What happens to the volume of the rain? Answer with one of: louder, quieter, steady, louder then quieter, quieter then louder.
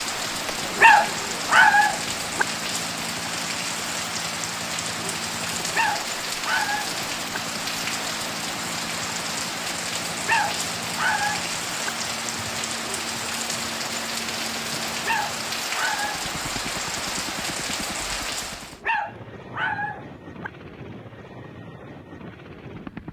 steady.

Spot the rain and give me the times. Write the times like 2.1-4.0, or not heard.
0.0-18.8.